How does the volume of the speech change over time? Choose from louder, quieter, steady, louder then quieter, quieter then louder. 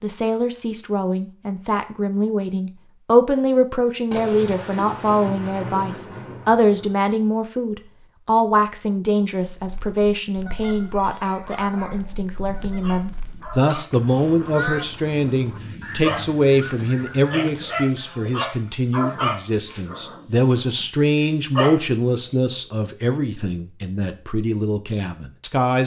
steady.